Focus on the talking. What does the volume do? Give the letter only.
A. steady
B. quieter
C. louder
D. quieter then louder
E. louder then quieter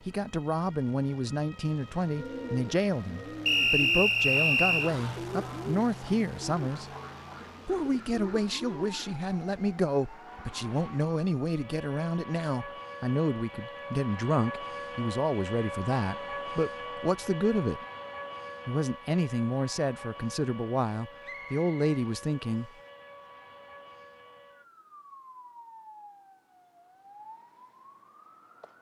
A.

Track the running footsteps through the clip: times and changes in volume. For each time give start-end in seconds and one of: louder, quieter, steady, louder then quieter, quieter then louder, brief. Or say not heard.
not heard.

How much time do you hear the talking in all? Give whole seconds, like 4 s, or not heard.
21 s.